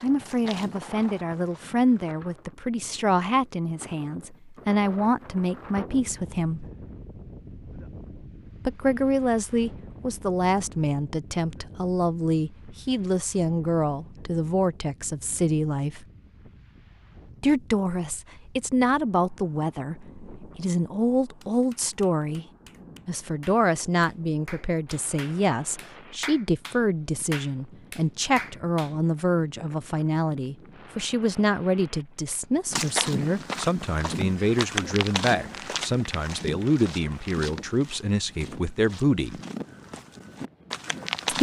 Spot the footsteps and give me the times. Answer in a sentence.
The footsteps can be heard from 0.0 to 2.1 s and from 32.7 to 41.3 s.